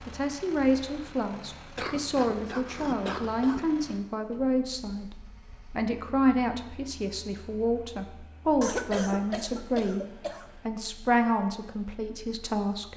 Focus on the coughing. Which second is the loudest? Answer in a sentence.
The loudest moment of the coughing is at 9 seconds.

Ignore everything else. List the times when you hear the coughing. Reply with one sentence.
You can hear the coughing from 1.8 to 3.6 s and from 8.6 to 10.6 s.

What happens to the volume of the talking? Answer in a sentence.
The loudness of the talking stays about the same.